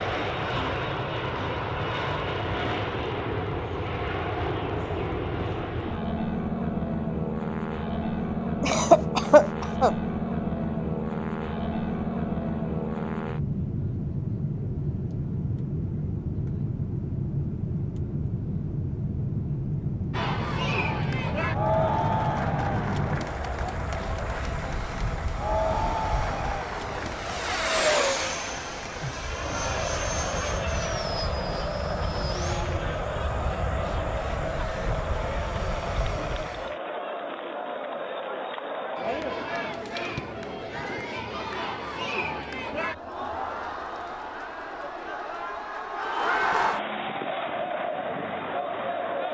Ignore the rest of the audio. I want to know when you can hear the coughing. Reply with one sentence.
The coughing can be heard from 8.6 to 9.9 s.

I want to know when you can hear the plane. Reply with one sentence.
The plane can be heard from 0.0 to 36.8 s.